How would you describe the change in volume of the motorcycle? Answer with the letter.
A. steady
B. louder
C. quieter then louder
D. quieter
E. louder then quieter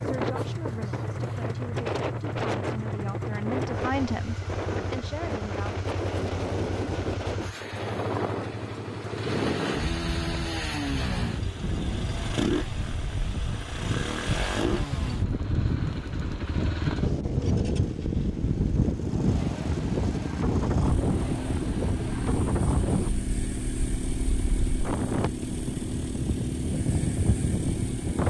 A.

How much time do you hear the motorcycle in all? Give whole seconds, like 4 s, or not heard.
28 s.